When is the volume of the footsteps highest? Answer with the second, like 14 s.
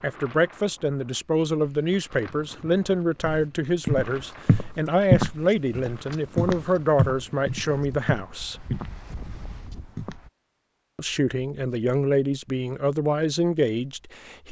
5 s.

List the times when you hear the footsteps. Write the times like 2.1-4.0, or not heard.
3.2-10.2.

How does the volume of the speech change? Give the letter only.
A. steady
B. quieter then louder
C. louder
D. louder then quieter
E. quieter
A.